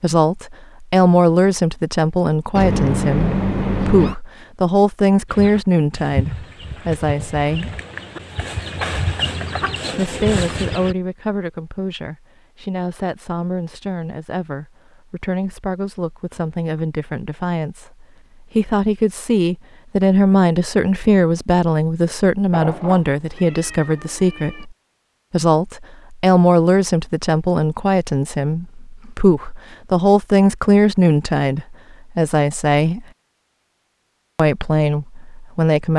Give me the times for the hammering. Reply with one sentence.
The hammering can't be heard in this clip.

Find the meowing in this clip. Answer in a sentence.
You can hear the meowing from 2.5 to 4.2 s and from 22.5 to 24.6 s.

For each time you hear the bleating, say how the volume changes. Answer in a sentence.
The bleating can't be heard in this clip.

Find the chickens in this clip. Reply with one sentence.
The chickens can be heard from 5.3 to 10.9 s.